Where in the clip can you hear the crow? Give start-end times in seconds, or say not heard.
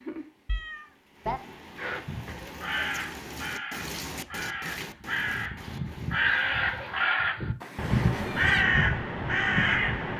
1.8-10.1.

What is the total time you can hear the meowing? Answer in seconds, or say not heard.
2 s.